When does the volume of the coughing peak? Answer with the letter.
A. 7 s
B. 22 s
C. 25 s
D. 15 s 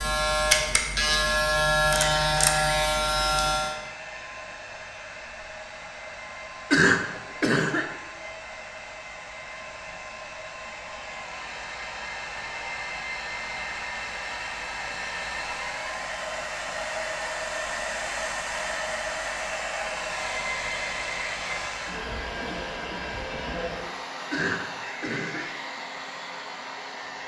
A.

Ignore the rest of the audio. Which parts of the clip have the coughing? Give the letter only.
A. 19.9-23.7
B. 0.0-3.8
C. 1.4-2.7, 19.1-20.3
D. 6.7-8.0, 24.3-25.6
D.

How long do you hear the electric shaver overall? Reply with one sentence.
The electric shaver can be heard for 4 seconds in total.